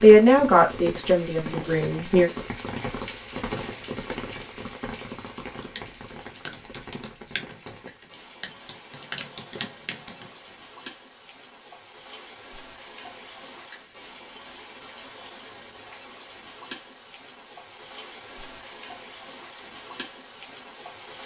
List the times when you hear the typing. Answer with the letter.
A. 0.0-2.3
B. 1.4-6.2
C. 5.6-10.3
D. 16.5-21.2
C.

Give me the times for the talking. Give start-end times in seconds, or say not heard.
0.0-2.3.